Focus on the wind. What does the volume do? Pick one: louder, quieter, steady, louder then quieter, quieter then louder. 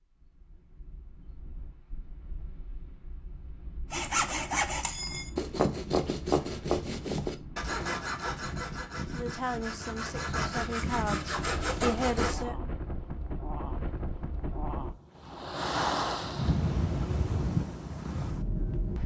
louder.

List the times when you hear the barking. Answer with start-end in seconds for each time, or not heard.
not heard.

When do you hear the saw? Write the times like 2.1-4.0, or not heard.
3.9-12.4.